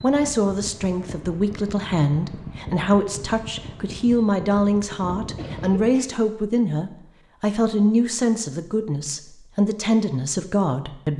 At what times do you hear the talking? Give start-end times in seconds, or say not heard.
0.0-11.1.